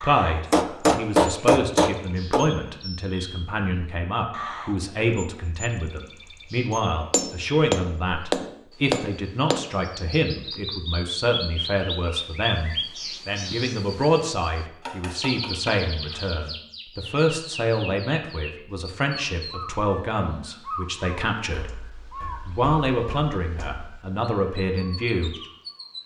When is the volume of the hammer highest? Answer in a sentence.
The loudest moment of the hammer is at 1 second.